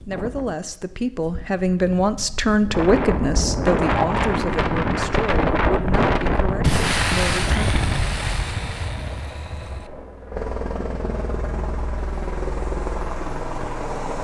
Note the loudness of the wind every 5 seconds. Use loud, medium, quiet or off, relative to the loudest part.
loud, loud, off.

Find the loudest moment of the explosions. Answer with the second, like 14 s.
7 s.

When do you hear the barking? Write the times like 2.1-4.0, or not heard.
not heard.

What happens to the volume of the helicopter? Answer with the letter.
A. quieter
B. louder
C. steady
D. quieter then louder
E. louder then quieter
B.